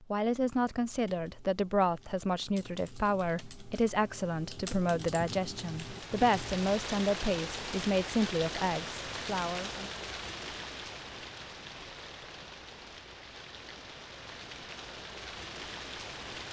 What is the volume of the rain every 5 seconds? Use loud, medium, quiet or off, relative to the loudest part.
off, loud, medium, loud.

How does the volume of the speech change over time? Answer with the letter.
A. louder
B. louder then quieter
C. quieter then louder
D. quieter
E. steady
E.